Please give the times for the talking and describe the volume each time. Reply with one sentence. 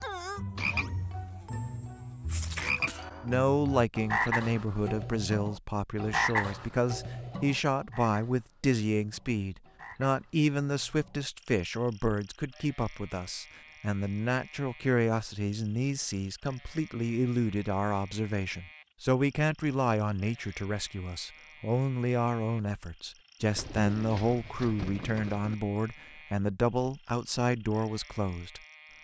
The talking can be heard from 3.2 to 28.6 s, at a steady volume.